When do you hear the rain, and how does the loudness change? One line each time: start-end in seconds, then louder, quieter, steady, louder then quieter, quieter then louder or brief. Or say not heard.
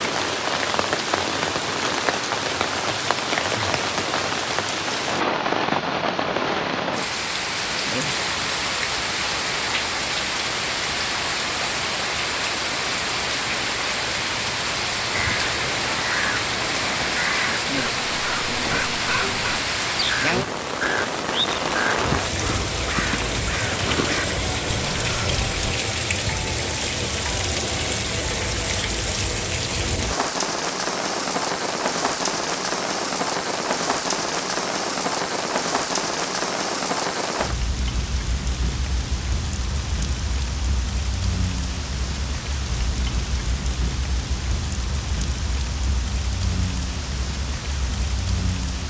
0.0-48.8 quieter.